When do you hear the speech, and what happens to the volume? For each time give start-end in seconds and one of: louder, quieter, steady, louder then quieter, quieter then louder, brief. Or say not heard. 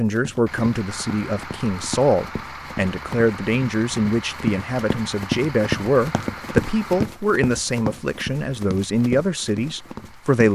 0.0-10.5 steady.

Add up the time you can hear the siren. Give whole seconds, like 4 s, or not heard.
not heard.